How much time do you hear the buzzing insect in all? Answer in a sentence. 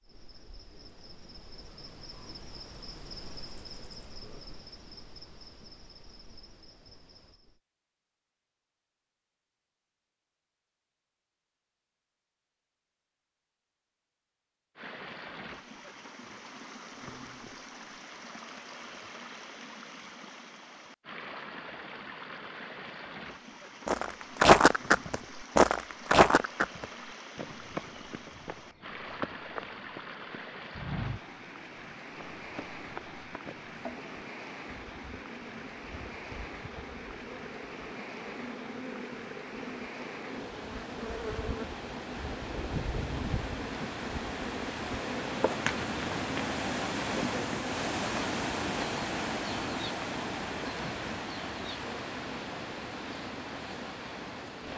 You can hear the buzzing insect for 29 seconds altogether.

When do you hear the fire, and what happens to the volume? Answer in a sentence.
You can't hear the fire here.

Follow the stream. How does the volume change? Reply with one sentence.
The volume of the stream goes up.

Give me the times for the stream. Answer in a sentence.
You can hear the stream from 14.8 to 54.7 s.